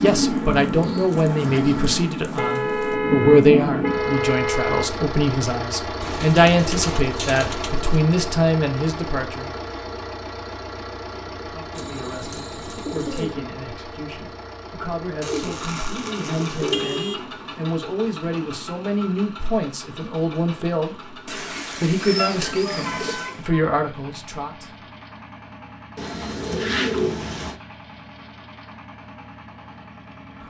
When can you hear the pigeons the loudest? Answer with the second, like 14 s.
27 s.